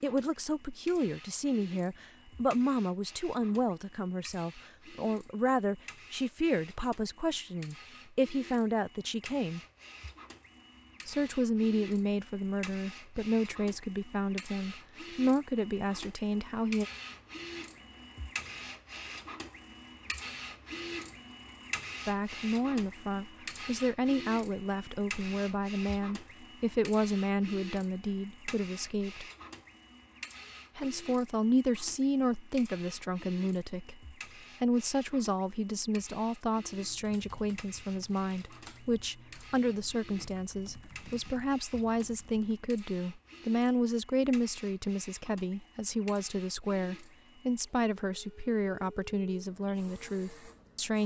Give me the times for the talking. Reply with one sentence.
You can hear the talking from 0.0 to 9.6 s, from 11.1 to 16.9 s, from 22.1 to 29.2 s and from 30.8 to 51.0 s.